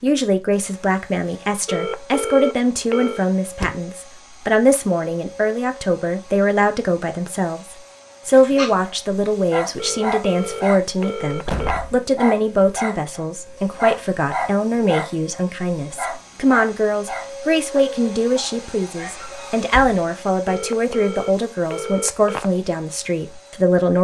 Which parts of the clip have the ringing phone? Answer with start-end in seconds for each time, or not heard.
1.6-3.2, 9.8-11.8, 20.4-22.5.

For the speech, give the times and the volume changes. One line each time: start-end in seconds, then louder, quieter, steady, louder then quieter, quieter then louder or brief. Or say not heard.
0.0-23.9 steady.